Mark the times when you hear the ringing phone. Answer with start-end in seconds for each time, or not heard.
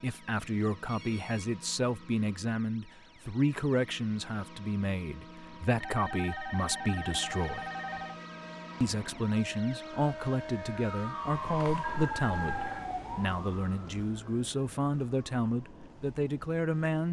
0.8-1.5, 5.8-8.2, 11.8-12.9.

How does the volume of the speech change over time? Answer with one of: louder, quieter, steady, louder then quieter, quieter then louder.
steady.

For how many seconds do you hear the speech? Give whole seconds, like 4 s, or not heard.
16 s.